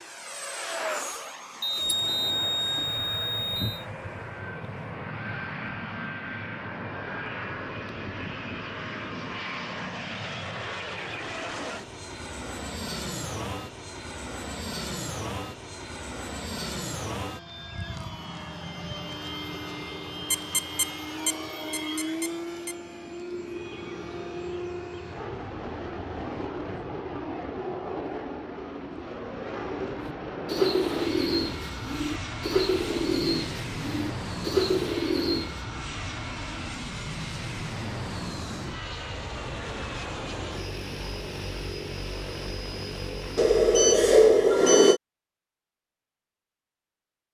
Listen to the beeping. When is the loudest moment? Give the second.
44 s.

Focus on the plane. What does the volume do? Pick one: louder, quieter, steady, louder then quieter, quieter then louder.
steady.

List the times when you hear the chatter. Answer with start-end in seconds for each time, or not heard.
not heard.